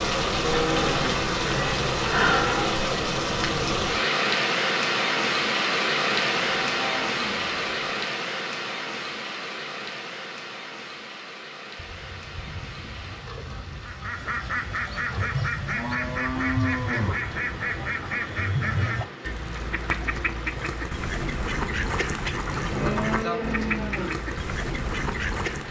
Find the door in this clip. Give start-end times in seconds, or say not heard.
not heard.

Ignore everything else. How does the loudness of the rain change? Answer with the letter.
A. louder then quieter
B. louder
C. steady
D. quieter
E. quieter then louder
D.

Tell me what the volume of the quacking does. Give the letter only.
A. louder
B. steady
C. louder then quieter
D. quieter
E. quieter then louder
B.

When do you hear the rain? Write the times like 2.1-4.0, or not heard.
0.0-25.6.